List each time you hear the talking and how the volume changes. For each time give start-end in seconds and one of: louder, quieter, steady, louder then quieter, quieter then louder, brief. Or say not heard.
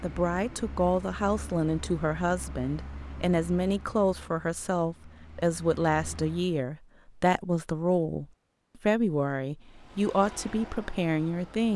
0.0-11.7 steady.